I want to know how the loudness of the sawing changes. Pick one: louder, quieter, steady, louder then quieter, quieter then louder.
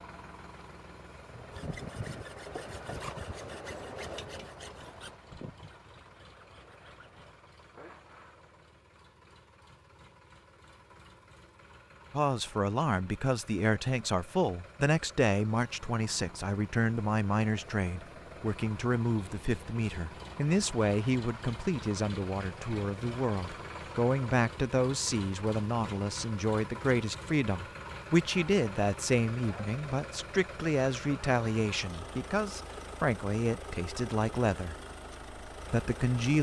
quieter.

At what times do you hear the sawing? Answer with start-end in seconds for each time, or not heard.
1.2-8.4.